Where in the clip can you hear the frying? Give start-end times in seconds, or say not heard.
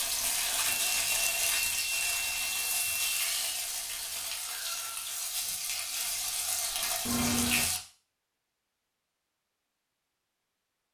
0.0-7.8.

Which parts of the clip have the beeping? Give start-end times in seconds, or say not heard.
0.7-3.4, 7.0-7.7.